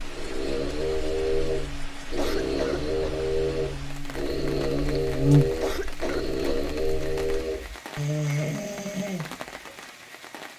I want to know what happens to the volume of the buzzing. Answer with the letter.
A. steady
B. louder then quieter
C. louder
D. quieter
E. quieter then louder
B.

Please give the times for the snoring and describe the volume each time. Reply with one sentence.
The snoring can be heard from 0.1 to 9.8 s, at a steady volume.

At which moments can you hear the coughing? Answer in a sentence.
You can hear the coughing from 1.9 to 3.2 s and from 5.4 to 6.7 s.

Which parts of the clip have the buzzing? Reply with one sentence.
The buzzing can be heard from 0.0 to 7.5 s.